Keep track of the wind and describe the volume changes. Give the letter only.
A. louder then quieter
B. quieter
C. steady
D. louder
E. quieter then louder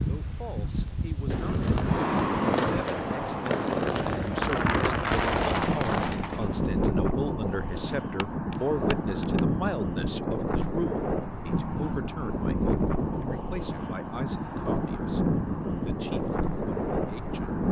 C.